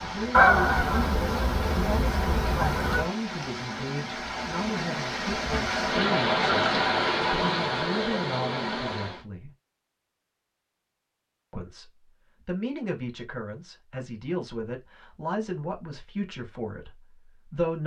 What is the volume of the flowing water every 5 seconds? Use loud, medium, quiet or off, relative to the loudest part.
medium, loud, off, off.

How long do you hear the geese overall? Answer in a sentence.
You can hear the geese for 3 seconds altogether.